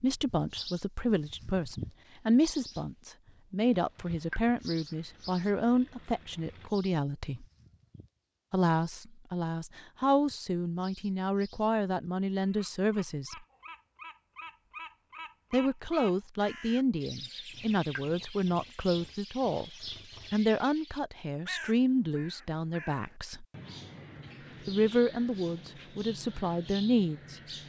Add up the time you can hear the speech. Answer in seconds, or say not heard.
23 s.